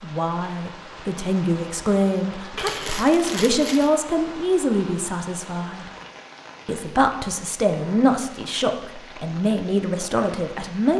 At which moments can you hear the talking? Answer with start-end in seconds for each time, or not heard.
0.0-5.8, 6.7-10.9.